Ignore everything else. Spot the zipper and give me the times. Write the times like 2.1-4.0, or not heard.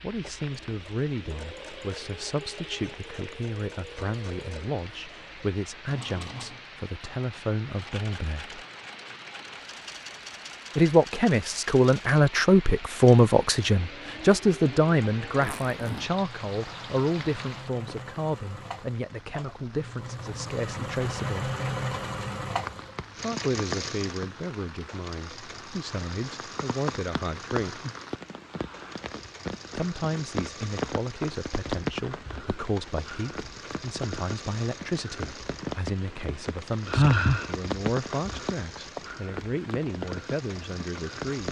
15.4-16.1.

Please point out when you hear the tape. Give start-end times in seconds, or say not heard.
not heard.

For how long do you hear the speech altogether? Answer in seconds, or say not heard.
36 s.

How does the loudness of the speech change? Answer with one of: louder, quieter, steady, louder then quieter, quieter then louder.
louder then quieter.